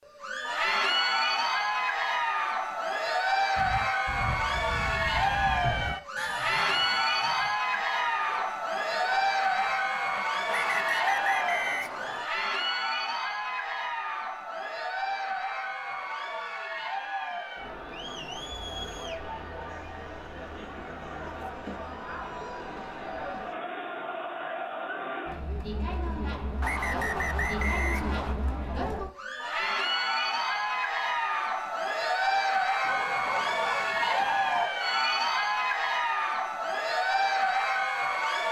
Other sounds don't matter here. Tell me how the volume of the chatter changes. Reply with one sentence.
The loudness of the chatter goes down, then up.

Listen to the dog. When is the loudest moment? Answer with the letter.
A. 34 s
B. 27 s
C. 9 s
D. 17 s
A.